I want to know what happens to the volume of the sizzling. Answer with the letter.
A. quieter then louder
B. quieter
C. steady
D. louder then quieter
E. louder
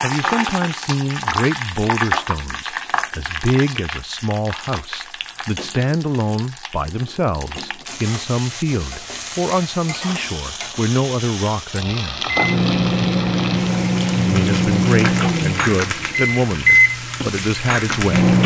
A.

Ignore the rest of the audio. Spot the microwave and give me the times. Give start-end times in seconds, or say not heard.
12.2-18.4.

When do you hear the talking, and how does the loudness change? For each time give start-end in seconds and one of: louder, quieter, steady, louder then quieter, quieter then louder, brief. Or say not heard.
0.0-12.2 steady
14.2-18.3 quieter then louder.